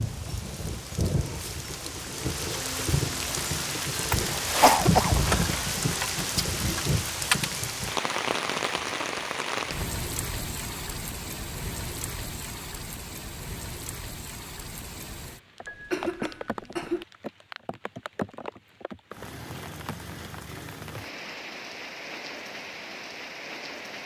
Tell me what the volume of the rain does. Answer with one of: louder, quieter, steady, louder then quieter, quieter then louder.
quieter.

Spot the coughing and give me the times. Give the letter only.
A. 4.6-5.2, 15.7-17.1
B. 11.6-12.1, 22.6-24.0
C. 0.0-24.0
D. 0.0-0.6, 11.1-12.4
A.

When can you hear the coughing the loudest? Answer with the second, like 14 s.
5 s.